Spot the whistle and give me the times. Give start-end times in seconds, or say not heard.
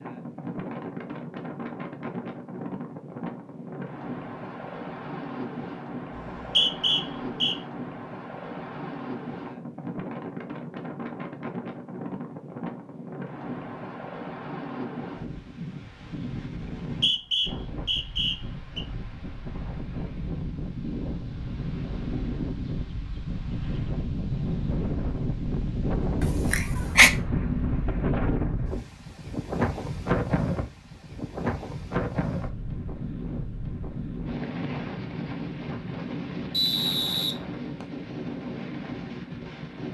6.2-7.5, 16.8-18.8, 36.5-37.9.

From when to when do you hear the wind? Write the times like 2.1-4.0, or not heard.
0.0-39.8.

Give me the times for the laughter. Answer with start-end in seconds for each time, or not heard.
26.2-27.1.